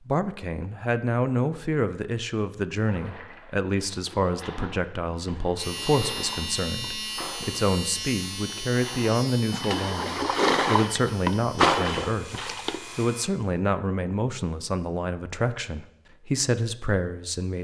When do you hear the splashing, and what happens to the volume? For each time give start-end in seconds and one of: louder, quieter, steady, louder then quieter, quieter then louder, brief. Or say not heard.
2.9-12.8 louder.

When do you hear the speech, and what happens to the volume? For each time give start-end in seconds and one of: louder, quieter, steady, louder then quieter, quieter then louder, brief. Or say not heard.
0.1-17.5 steady.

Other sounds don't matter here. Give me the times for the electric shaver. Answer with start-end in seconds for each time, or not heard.
5.5-13.3.